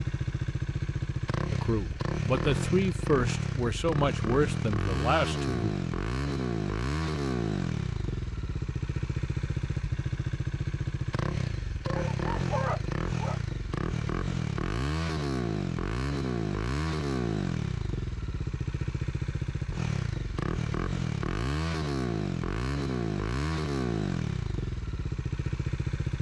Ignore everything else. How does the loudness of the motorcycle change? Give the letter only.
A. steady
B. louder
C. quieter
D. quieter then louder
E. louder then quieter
A.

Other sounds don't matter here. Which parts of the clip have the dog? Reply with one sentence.
You can hear the dog from 11.8 to 13.4 s.